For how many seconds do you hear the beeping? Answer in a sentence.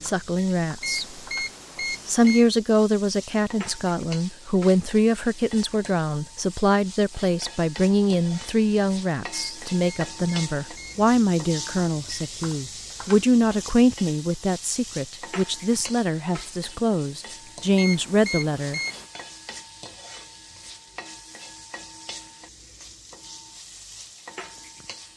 The beeping can be heard for 5 seconds in total.